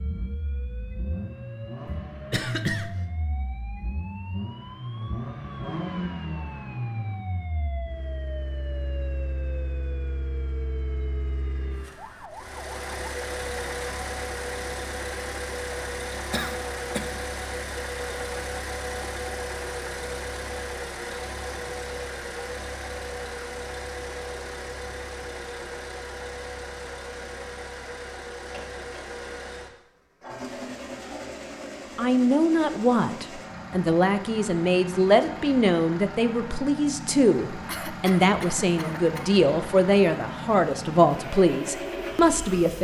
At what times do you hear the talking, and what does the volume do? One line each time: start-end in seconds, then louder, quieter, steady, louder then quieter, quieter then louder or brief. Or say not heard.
31.9-42.8 steady.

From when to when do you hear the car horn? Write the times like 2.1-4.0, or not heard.
not heard.